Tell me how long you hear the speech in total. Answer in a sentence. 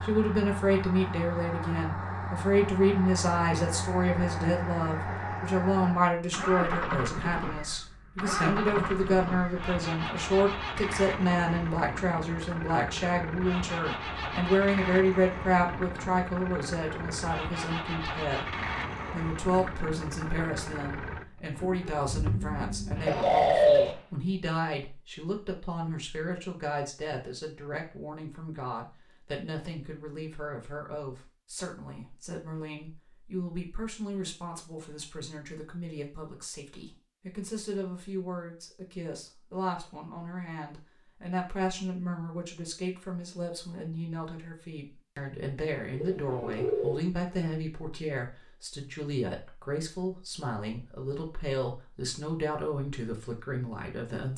You can hear the speech for 54 seconds altogether.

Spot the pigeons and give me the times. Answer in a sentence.
The pigeons can be heard from 23.1 to 23.9 s and from 45.6 to 47.0 s.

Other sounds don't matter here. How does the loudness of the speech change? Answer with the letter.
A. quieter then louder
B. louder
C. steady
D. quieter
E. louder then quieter
D.